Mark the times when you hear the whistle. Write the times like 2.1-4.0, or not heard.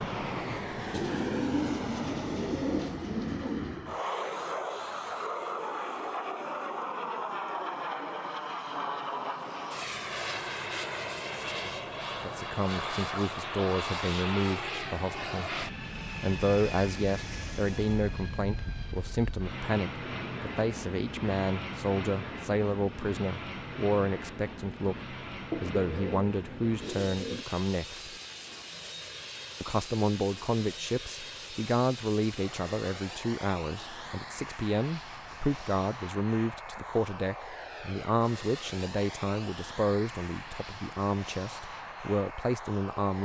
not heard.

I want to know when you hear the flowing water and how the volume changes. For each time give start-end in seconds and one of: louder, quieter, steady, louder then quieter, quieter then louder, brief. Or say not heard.
not heard.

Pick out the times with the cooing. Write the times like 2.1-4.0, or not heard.
0.9-3.9, 25.5-27.4.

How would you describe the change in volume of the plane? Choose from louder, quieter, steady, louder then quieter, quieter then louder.
quieter.